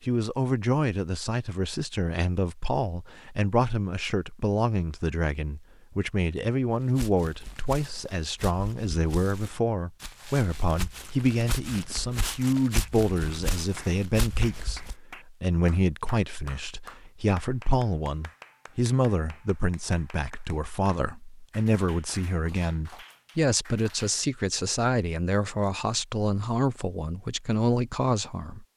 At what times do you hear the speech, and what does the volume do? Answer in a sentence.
The speech can be heard from 0.0 to 28.6 s, at a steady volume.